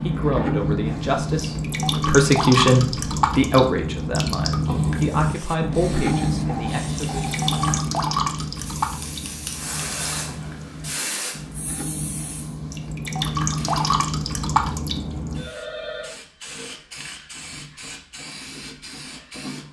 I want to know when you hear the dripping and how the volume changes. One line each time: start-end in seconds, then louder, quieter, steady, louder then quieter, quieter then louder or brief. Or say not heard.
0.0-15.4 quieter then louder.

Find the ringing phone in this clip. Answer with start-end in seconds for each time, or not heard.
6.0-7.8, 15.3-16.1.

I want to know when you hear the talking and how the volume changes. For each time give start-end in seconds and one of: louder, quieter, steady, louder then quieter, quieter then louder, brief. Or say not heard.
0.0-7.2 louder then quieter.